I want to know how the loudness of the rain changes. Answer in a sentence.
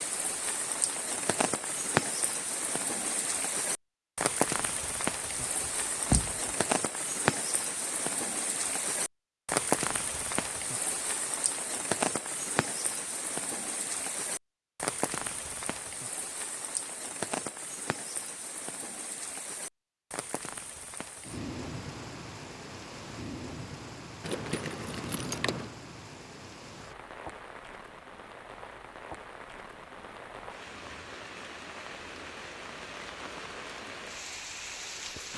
The volume of the rain goes down.